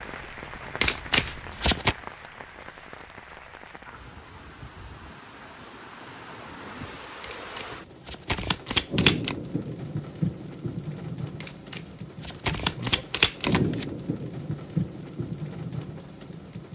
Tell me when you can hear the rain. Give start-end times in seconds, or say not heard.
0.0-16.7.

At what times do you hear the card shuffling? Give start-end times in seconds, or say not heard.
0.8-1.9, 7.2-9.3, 11.4-13.8.